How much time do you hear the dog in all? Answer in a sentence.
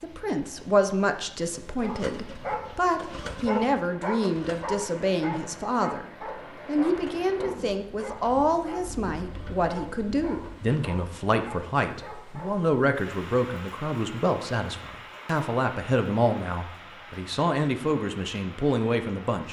You can hear the dog for 11 seconds altogether.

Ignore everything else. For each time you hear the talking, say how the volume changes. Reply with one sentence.
You can hear the talking from 0.0 to 19.4 s, at a steady volume.